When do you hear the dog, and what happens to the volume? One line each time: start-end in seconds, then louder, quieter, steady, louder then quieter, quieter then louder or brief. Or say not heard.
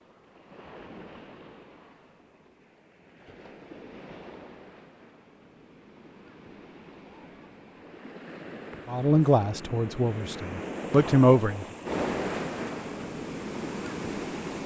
not heard.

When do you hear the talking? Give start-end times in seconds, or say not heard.
8.8-11.7.